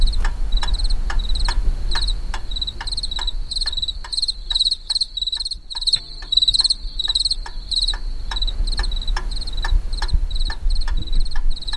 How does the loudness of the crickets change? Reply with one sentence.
The loudness of the crickets goes up, then down.